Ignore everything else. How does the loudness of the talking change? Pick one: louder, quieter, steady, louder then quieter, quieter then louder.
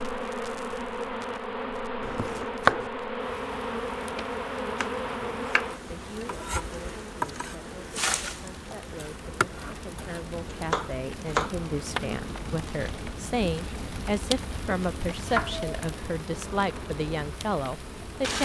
louder.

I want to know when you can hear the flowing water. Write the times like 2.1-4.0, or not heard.
not heard.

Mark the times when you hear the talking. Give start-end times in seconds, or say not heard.
5.1-18.4.